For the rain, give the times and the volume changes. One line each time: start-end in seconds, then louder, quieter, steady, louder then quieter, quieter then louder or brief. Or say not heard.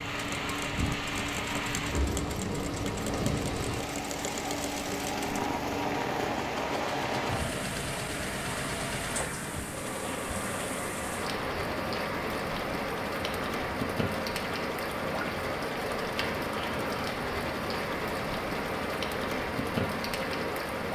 0.0-20.9 steady.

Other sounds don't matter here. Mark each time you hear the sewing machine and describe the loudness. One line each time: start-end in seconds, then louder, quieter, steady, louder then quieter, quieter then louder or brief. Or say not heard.
0.0-20.9 steady.